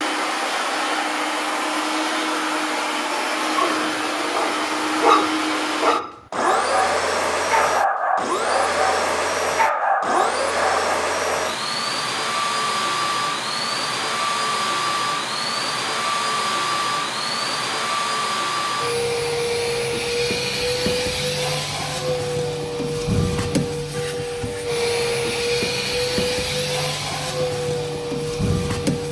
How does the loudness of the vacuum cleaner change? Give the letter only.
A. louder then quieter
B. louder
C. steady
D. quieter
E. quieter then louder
C.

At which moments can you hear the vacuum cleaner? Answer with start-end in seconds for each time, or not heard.
0.0-29.0.